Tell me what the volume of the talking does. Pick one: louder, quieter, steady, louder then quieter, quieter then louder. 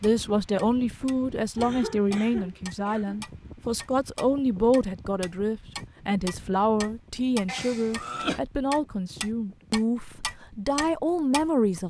steady.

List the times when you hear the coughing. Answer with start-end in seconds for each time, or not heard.
1.6-3.2, 7.5-8.4.